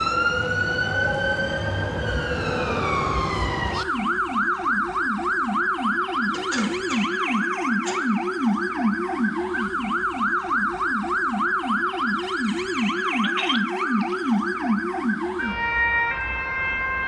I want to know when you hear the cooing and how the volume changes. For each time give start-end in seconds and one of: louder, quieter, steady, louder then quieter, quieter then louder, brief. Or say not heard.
not heard.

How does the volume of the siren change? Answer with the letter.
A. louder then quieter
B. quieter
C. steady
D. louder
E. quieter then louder
C.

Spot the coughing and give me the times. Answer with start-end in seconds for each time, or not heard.
6.3-8.0.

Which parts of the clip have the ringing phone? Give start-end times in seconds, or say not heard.
13.2-14.2.